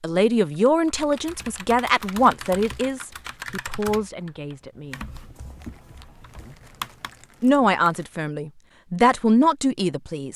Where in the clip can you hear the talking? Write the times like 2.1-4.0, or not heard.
0.0-5.0, 7.4-10.3.